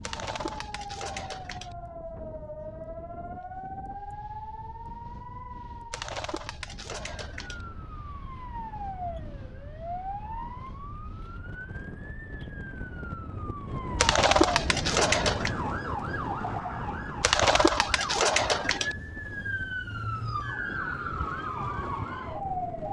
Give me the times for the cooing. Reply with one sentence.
You can hear the cooing from 0.0 to 1.8 s, from 5.9 to 7.7 s, from 14.0 to 15.5 s and from 17.2 to 18.9 s.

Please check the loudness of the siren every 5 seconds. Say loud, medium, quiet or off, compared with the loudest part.
medium, medium, medium, loud, loud.